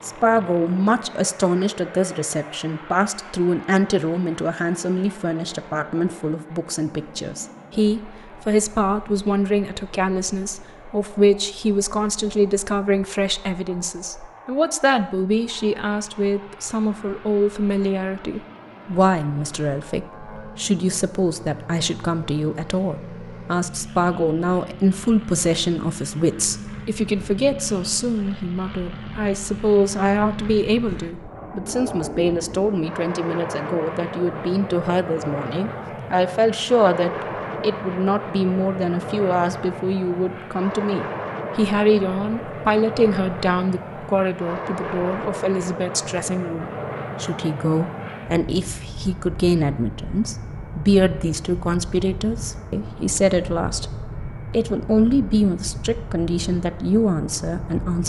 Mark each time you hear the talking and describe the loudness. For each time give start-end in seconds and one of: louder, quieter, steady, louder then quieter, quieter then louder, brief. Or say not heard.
0.0-58.0 steady.